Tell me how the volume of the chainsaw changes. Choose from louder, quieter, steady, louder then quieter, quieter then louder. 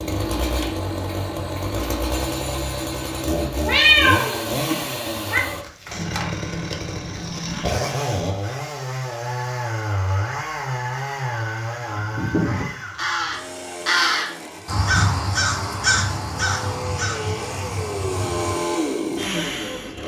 quieter then louder.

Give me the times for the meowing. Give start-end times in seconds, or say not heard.
3.4-5.4.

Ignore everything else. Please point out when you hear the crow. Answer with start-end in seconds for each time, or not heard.
11.8-18.6.